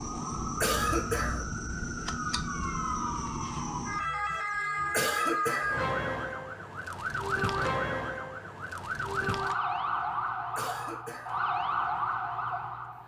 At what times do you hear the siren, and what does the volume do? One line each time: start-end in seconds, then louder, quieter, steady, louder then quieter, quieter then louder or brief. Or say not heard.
0.0-13.0 steady.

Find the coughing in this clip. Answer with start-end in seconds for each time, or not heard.
0.6-1.4, 4.9-5.8, 10.6-11.4.